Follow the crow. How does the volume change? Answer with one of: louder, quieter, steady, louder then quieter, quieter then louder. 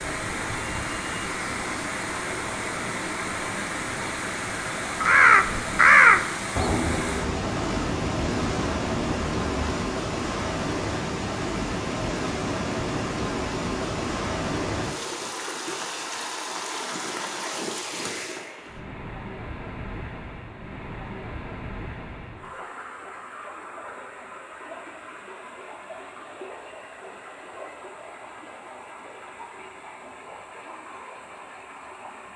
quieter.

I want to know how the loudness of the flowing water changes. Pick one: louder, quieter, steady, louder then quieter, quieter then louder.
quieter.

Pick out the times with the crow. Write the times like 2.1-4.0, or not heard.
5.0-9.8.